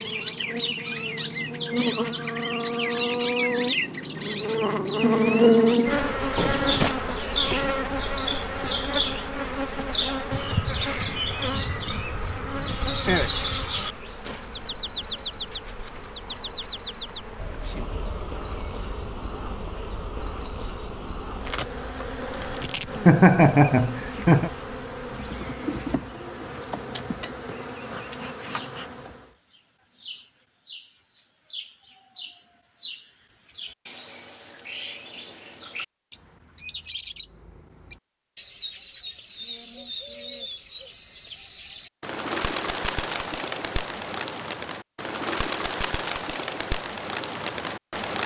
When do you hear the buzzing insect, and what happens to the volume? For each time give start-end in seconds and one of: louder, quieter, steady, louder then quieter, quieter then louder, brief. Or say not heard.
0.0-29.3 quieter.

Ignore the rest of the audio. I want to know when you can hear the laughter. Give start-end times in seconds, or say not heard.
23.1-24.5.